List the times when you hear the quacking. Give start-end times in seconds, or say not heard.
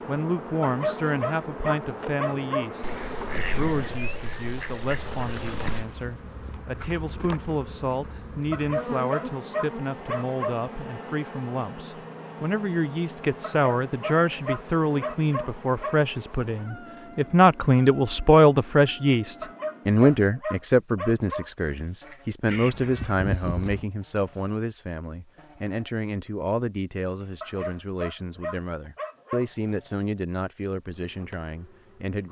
2.8-5.8, 22.4-23.9.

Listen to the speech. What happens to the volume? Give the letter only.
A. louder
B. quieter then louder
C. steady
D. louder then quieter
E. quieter
D.